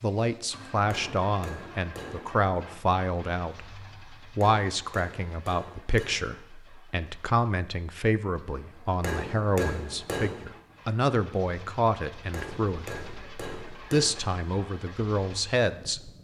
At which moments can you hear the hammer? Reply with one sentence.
You can hear the hammer from 0.9 to 2.3 s, from 4.4 to 6.3 s, from 9.0 to 10.4 s and from 12.3 to 14.3 s.